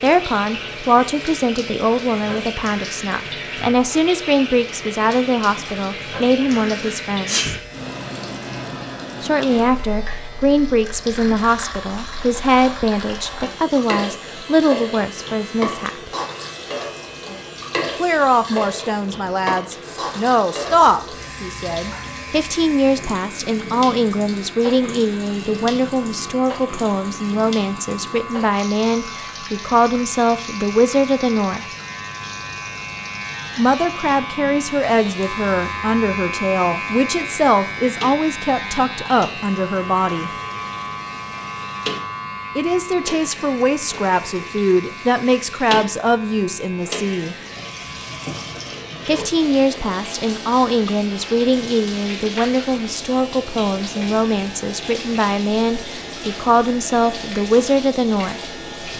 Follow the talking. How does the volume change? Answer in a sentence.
The volume of the talking stays about the same.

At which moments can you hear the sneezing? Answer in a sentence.
You can hear the sneezing from 6.5 to 7.5 s.